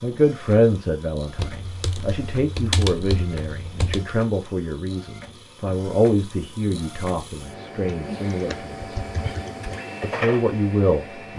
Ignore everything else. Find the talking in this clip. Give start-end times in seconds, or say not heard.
0.0-9.0, 10.0-11.3.